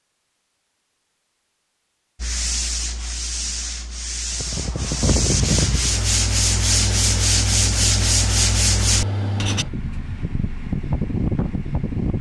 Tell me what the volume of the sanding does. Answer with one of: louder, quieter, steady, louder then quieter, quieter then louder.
louder.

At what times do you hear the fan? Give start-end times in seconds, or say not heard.
4.3-12.1.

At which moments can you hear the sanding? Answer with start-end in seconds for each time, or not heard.
2.2-9.7.